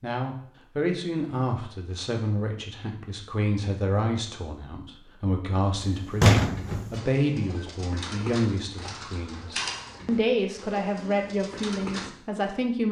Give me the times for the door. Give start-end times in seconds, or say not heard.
5.8-7.0.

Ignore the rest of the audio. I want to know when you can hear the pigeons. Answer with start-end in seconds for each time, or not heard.
6.5-12.1.